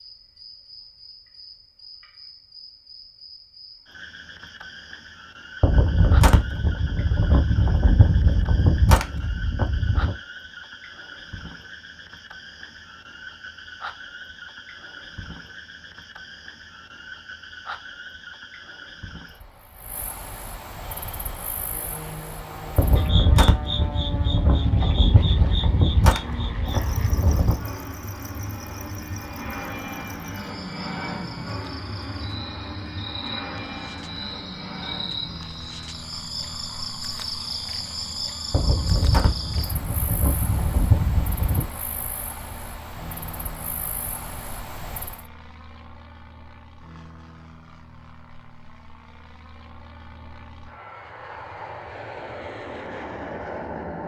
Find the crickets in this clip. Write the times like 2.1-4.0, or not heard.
0.0-45.2.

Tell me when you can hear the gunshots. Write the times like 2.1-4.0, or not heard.
5.6-10.2, 22.8-27.6, 38.5-41.6.